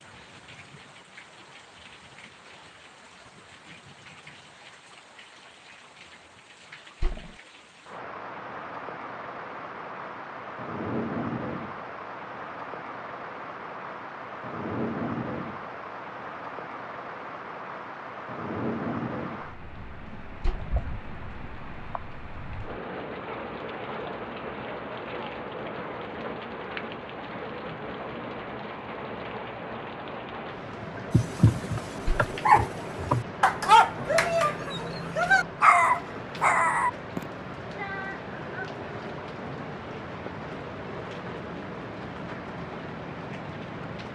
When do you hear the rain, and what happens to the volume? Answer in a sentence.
You can hear the rain from 0.0 to 44.1 s, getting louder.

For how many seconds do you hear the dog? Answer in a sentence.
You can hear the dog for 6 seconds altogether.